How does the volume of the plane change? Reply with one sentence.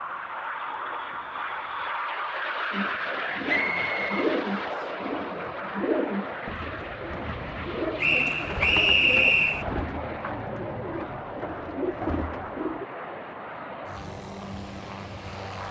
The volume of the plane goes down.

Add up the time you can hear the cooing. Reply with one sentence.
The cooing can be heard for 10 seconds in total.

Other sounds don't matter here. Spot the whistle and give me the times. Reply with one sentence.
You can hear the whistle from 3.5 to 4.9 s and from 8.0 to 9.7 s.